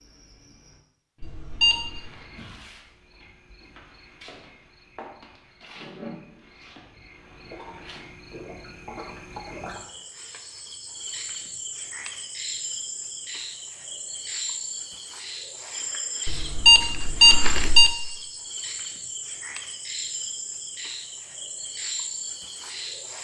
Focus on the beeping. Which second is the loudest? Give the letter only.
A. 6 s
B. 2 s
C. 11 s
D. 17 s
D.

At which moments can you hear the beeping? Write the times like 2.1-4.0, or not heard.
1.2-2.0, 16.2-17.9.